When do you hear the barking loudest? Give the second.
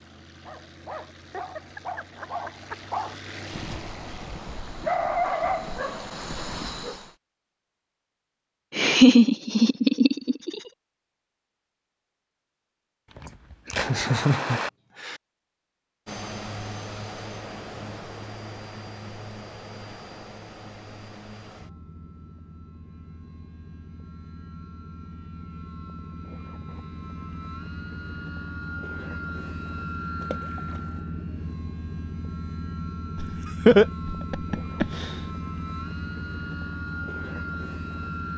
5 s.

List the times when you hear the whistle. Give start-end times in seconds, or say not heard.
not heard.